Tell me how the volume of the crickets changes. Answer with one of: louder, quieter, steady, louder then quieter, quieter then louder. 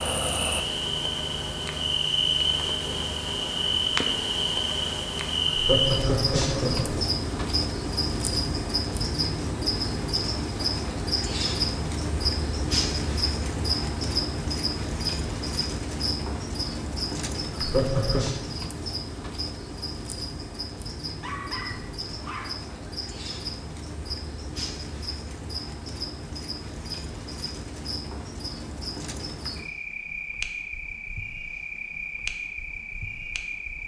quieter.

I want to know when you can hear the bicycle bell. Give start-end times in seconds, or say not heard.
not heard.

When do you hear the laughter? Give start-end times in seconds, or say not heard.
5.5-7.0, 17.5-18.3.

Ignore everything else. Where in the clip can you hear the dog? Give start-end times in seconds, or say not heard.
21.2-22.8.